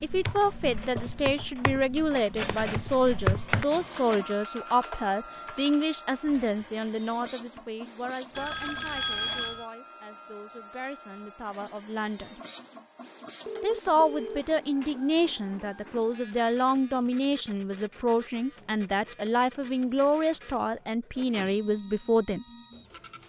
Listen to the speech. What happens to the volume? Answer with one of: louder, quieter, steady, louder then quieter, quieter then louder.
quieter then louder.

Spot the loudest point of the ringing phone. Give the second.
9 s.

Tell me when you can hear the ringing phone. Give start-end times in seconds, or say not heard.
8.3-9.7, 13.4-14.4.